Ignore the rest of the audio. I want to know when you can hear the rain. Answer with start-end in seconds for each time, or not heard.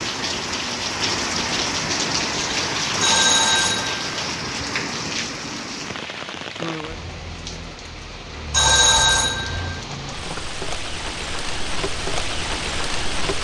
0.0-13.4.